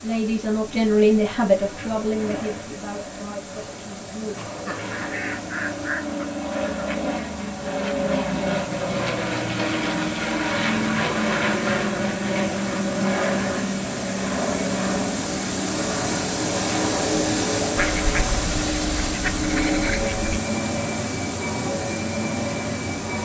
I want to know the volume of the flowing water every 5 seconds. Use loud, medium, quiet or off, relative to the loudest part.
quiet, quiet, medium, loud, medium.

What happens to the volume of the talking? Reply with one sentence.
The loudness of the talking goes down.